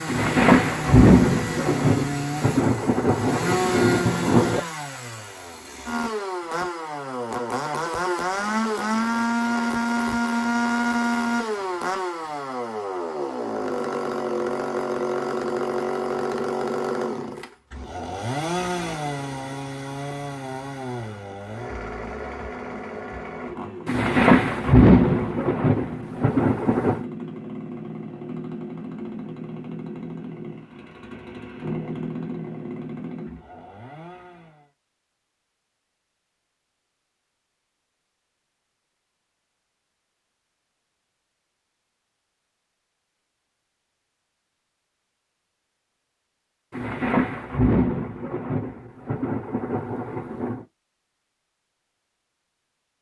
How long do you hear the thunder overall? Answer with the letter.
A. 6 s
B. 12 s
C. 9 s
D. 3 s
B.